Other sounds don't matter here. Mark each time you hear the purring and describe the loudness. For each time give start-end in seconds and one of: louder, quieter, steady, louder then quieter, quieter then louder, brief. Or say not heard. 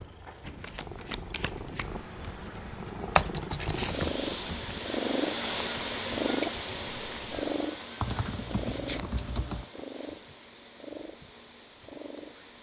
0.0-12.5 louder then quieter.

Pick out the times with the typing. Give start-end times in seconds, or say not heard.
1.8-4.8, 8.0-9.7.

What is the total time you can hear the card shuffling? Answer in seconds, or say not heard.
2 s.